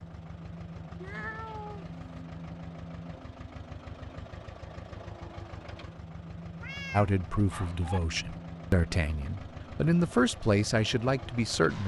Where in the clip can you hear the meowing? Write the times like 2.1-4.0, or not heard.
1.0-2.0, 6.6-8.0.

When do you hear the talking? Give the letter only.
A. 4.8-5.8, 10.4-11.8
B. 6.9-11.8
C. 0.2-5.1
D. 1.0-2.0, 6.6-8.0
B.